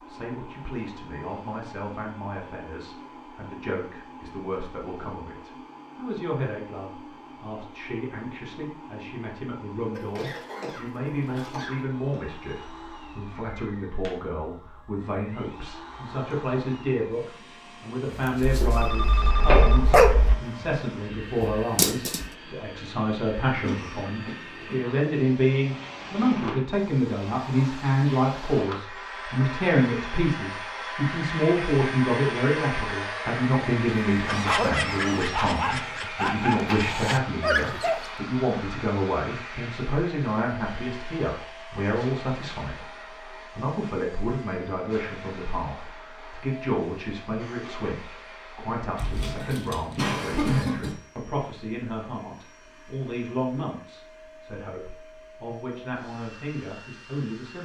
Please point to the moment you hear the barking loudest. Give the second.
20 s.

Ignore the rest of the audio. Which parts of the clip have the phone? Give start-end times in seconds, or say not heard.
18.6-20.4.